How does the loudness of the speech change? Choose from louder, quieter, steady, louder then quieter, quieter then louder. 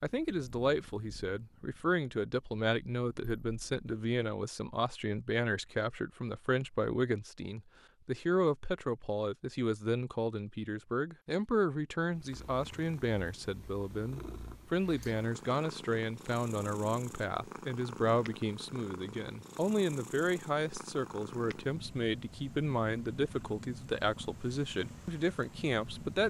steady.